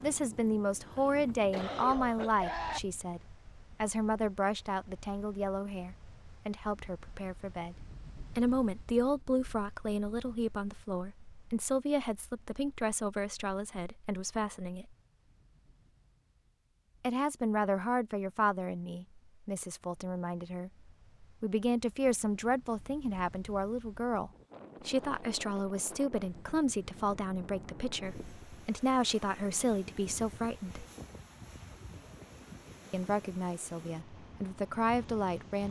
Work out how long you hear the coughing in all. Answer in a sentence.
You can hear the coughing for 2 seconds altogether.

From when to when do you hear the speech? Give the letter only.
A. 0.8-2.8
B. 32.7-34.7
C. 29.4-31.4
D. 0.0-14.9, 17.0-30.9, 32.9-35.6
D.